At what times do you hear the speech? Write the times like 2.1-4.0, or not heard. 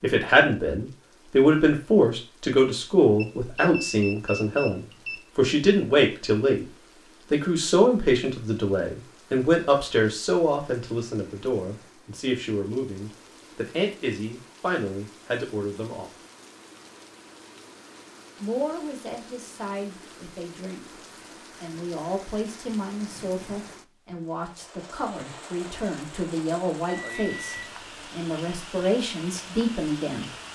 0.0-6.7, 7.3-16.1, 18.4-21.0, 21.6-30.2.